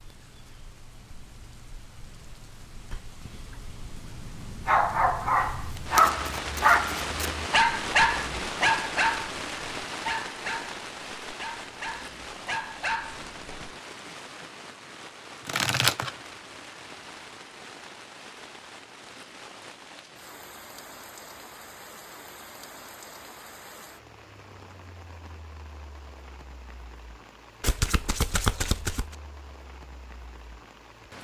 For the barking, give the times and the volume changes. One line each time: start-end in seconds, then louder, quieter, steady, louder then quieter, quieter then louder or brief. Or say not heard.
4.7-13.8 quieter.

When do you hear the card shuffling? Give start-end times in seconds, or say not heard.
5.5-7.5, 15.4-16.1, 27.6-29.1.